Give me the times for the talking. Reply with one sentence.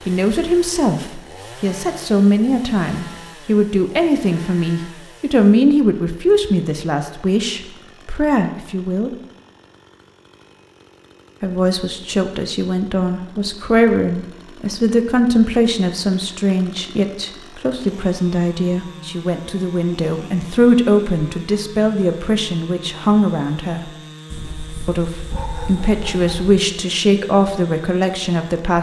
The talking can be heard from 0.1 to 9.1 s, from 11.4 to 23.9 s and from 24.9 to 28.7 s.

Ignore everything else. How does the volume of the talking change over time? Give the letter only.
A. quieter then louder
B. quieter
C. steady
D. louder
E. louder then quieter
C.